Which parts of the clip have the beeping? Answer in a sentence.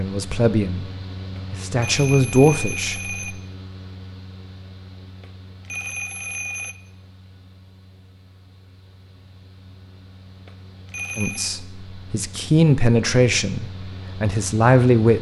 The beeping can be heard from 1.4 to 3.4 s, from 5.2 to 6.8 s and from 10.4 to 11.6 s.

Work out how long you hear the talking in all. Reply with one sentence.
You can hear the talking for 7 seconds altogether.